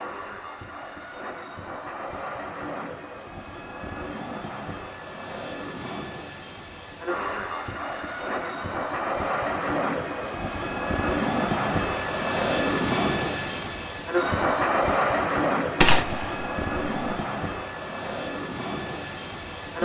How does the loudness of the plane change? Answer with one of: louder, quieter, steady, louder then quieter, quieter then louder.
louder then quieter.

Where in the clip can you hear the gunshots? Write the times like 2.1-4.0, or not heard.
15.8-16.4.